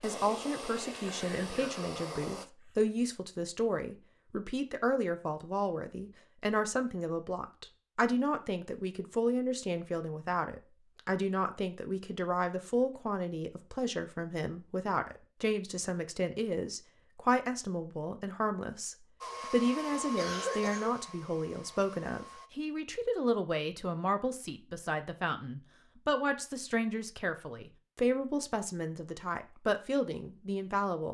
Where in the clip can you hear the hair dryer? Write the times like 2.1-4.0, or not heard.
0.0-2.5, 19.2-22.5.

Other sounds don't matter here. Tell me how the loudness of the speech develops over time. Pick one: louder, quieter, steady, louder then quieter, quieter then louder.
steady.